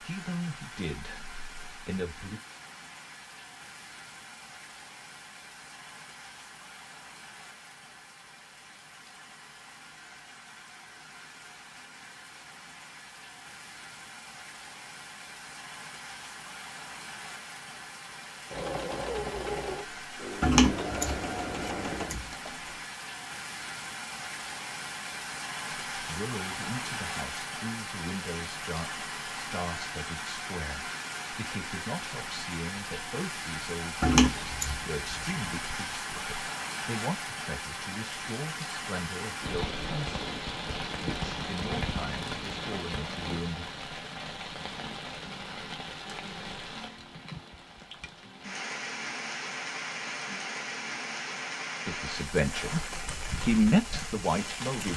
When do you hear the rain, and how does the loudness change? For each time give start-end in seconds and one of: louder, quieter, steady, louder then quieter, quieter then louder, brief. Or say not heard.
0.0-54.9 louder.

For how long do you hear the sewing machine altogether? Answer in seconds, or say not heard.
4 s.